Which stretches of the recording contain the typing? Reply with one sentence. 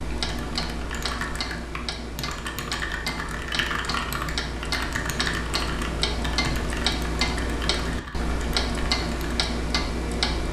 The typing can be heard from 0.2 to 9.4 s.